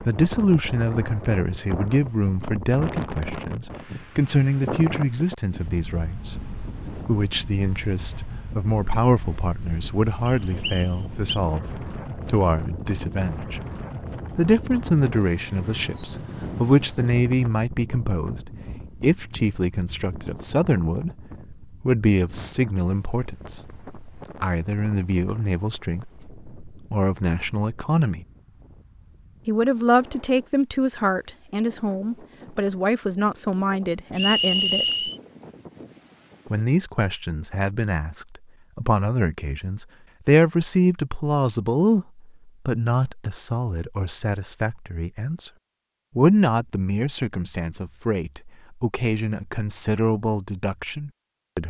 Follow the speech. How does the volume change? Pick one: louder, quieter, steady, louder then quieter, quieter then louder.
steady.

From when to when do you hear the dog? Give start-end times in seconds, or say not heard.
not heard.